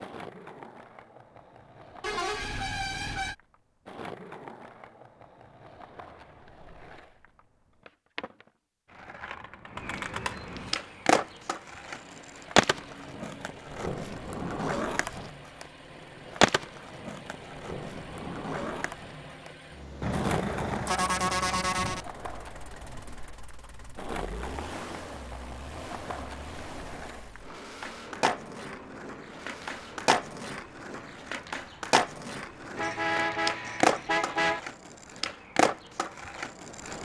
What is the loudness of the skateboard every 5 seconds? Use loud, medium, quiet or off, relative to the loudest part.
quiet, quiet, loud, loud, medium, medium, loud, loud.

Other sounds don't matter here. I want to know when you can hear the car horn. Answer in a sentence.
The car horn can be heard from 2.0 to 3.4 s, from 20.0 to 22.1 s and from 32.8 to 34.6 s.